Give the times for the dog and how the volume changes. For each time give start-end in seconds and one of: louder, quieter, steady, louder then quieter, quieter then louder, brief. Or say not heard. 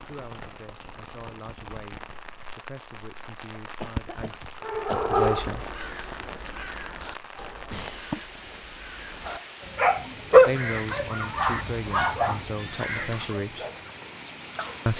3.5-5.8 brief
9.2-14.9 quieter.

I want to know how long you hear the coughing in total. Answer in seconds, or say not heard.
2 s.